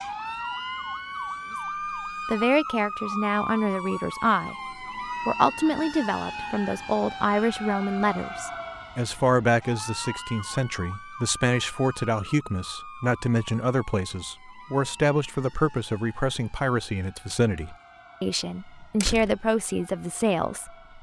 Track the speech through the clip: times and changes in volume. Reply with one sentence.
You can hear the speech briefly from 2.2 to 4.5 s; and from 5.2 to 20.9 s, at a steady volume.